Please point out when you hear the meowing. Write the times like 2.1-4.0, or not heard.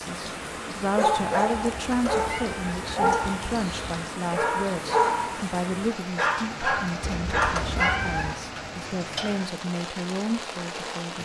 1.5-4.0, 7.0-8.4.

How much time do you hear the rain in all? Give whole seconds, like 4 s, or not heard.
11 s.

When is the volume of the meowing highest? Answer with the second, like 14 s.
8 s.